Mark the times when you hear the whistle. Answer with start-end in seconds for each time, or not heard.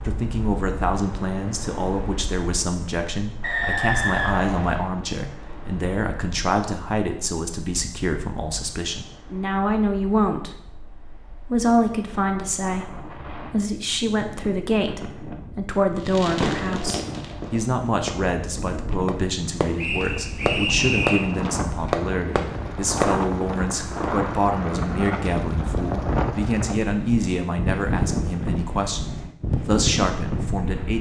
3.4-4.8, 19.8-21.2.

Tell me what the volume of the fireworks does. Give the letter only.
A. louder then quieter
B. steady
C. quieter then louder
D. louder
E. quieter
C.